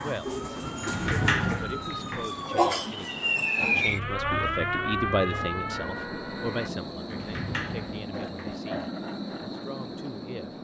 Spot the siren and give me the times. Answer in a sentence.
The siren can be heard from 0.0 to 6.7 s.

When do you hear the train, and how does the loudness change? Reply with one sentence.
The train can be heard from 0.0 to 10.6 s, getting quieter then louder.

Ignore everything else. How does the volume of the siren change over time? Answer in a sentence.
The loudness of the siren goes up, then down.